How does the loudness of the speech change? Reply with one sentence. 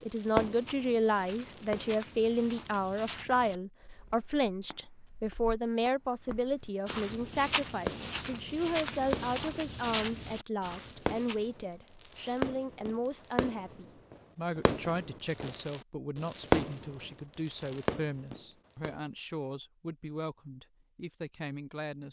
The loudness of the speech goes down.